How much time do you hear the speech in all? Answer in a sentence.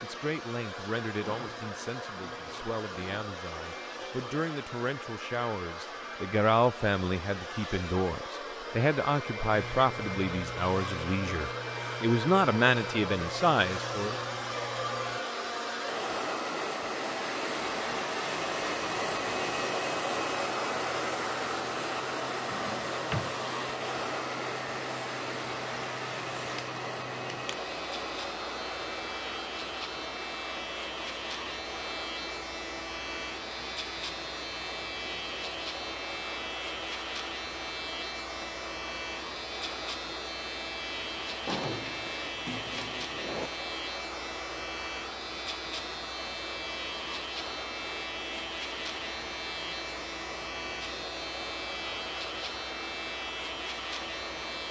The speech can be heard for 14 seconds in total.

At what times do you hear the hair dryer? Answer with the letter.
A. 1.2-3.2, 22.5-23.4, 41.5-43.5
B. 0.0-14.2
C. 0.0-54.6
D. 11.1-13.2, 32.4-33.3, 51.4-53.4
C.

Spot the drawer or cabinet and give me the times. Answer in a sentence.
You can hear the drawer or cabinet from 1.2 to 3.2 s, from 22.5 to 23.4 s and from 41.5 to 43.5 s.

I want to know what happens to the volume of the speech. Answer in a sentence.
The volume of the speech goes up.